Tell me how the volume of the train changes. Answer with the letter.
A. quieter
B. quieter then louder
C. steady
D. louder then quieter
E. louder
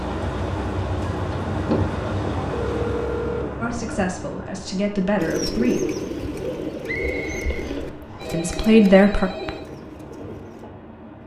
A.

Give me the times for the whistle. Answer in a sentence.
You can hear the whistle from 6.8 to 8.4 s.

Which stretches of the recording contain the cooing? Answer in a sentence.
The cooing can be heard from 5.2 to 10.7 s.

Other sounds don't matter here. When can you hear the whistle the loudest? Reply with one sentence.
The loudest moment of the whistle is at 7 seconds.